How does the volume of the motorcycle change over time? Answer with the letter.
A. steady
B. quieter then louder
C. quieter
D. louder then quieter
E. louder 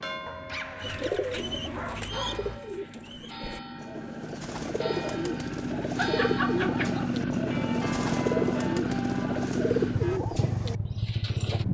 E.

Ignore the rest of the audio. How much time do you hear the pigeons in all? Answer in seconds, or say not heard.
11 s.